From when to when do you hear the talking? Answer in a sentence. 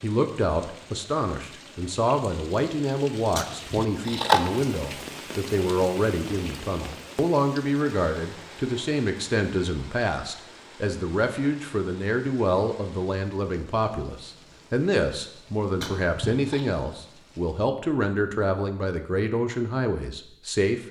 The talking can be heard from 0.0 to 20.8 s.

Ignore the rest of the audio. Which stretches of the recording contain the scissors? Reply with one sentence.
You can hear the scissors from 3.4 to 4.4 s and from 15.8 to 16.6 s.